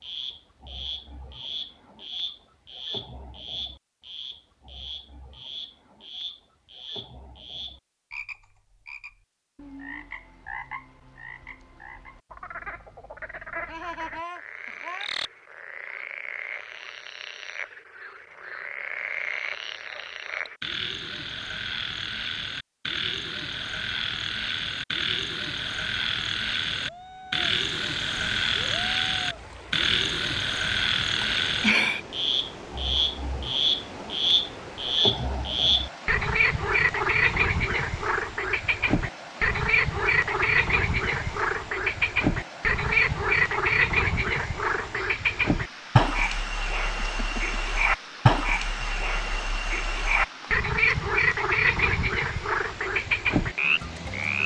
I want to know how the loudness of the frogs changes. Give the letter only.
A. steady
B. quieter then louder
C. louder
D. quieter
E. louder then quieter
C.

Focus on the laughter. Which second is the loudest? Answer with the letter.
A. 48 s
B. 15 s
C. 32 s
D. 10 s
C.